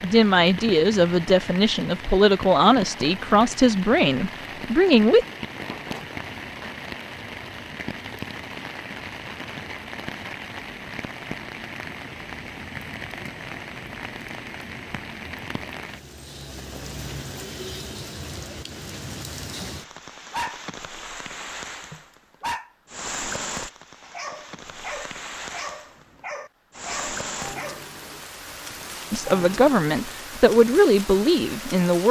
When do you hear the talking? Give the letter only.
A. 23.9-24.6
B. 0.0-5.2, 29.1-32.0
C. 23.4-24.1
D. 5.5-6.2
B.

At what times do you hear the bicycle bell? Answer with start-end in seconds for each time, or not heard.
5.5-6.2.